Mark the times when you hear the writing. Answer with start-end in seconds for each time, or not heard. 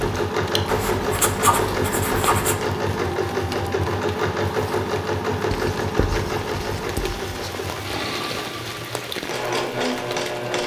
0.7-2.6, 5.5-7.5.